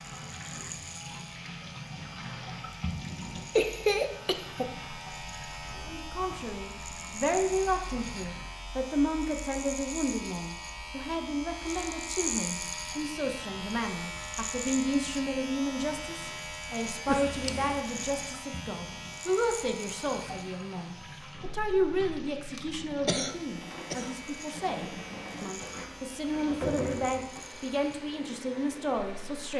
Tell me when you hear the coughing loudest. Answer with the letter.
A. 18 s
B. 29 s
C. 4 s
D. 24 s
C.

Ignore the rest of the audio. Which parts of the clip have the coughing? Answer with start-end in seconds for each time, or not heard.
3.5-4.7, 17.1-17.8, 23.1-24.1.